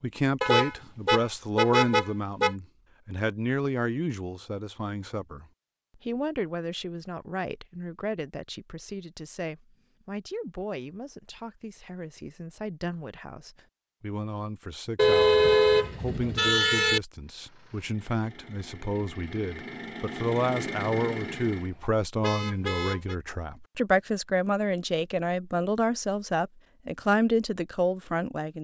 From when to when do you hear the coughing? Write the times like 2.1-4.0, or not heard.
not heard.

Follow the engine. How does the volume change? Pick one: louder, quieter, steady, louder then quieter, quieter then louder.
louder.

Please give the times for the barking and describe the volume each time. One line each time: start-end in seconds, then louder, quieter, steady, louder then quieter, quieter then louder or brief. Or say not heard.
not heard.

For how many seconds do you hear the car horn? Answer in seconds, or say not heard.
5 s.